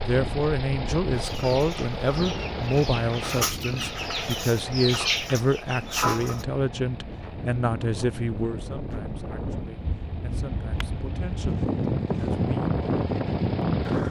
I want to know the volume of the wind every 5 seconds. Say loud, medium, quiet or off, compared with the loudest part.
medium, medium, loud.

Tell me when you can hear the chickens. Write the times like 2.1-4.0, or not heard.
1.1-6.5.